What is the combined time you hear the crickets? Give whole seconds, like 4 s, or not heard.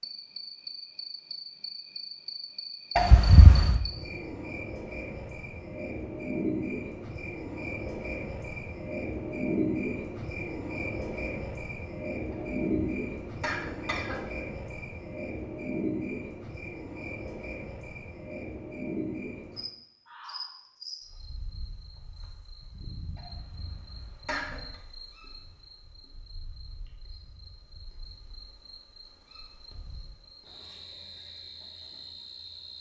33 s.